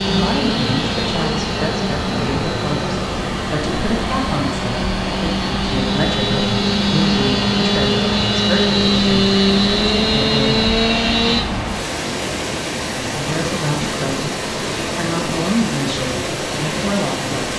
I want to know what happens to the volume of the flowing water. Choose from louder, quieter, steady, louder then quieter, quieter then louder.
steady.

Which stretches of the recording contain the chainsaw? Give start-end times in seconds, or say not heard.
0.0-11.4.